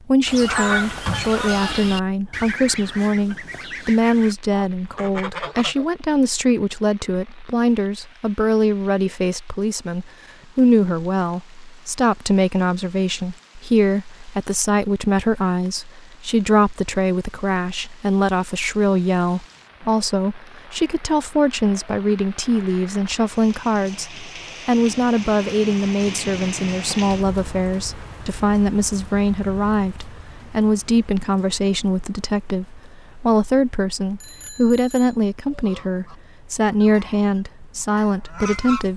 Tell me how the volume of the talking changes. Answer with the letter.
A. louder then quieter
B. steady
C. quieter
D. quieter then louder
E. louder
B.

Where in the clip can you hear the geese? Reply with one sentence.
You can hear the geese from 0.2 to 5.8 s and from 35.5 to 38.9 s.